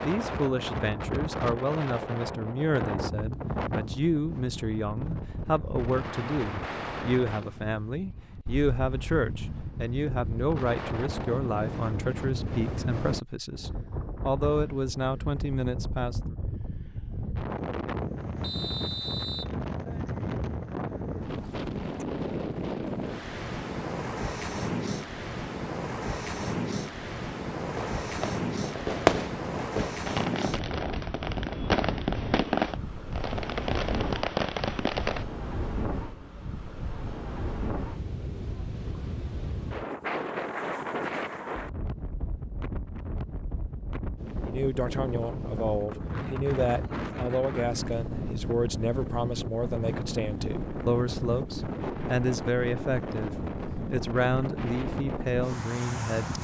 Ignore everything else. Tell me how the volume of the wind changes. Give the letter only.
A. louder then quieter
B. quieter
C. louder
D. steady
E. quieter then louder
D.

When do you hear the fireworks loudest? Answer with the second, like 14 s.
29 s.